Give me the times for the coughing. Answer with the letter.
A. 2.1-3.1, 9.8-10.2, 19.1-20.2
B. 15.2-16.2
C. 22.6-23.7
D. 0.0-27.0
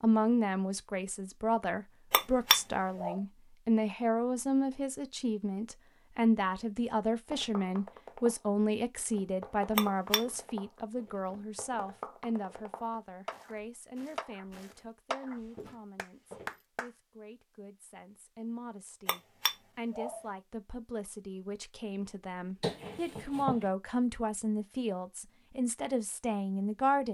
C.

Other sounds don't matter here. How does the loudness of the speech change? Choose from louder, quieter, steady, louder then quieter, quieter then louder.
quieter then louder.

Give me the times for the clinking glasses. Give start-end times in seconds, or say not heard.
2.1-3.1, 9.8-10.2, 19.1-20.2.